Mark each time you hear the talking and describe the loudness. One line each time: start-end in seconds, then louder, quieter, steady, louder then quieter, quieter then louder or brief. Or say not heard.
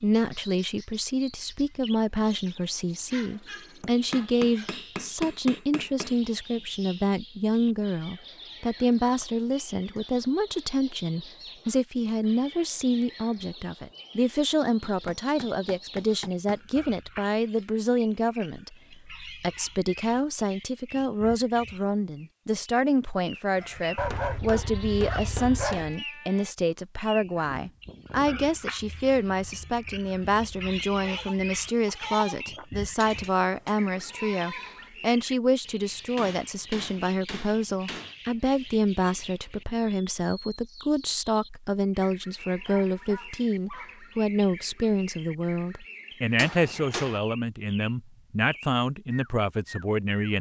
0.0-50.3 steady.